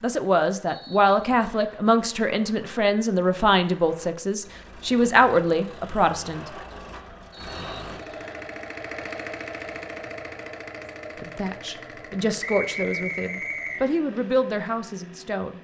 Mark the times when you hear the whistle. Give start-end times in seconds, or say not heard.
0.7-1.8, 7.3-8.2, 12.4-13.8.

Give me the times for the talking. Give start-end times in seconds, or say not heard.
0.0-6.5, 11.2-15.5.